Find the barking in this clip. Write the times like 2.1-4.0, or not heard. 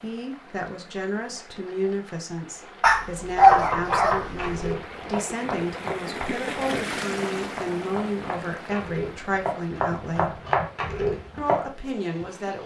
2.8-4.5.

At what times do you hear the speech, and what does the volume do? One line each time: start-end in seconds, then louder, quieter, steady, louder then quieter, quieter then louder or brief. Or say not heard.
0.0-10.4 steady
11.3-12.6 brief.